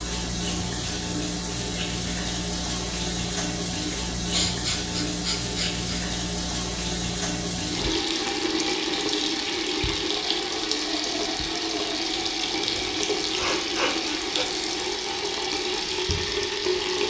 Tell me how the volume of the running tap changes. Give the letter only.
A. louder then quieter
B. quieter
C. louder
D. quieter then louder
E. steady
E.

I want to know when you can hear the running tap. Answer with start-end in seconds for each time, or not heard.
0.0-17.0.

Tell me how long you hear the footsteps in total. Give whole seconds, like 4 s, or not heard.
not heard.